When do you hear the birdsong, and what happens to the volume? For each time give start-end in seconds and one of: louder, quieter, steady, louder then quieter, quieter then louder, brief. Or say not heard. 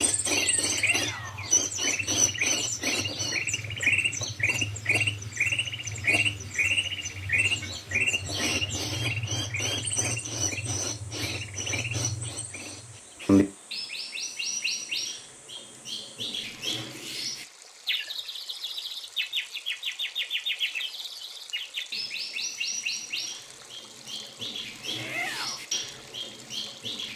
0.0-27.1 quieter.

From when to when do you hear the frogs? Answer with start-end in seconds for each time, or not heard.
not heard.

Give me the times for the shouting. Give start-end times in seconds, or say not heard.
0.7-1.6, 24.9-25.6.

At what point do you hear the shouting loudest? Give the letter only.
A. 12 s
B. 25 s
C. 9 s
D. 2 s
B.